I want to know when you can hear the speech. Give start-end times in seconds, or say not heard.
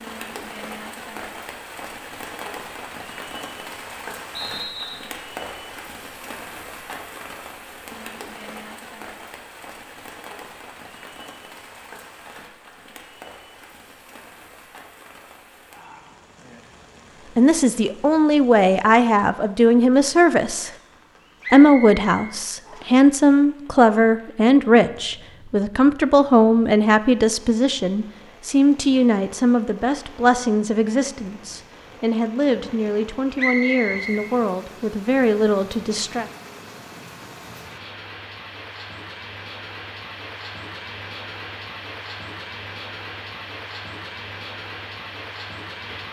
17.4-20.7, 21.5-36.2.